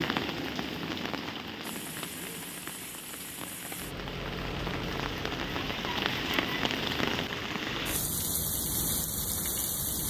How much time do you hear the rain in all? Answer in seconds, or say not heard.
10 s.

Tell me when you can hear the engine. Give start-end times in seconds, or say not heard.
1.6-8.1.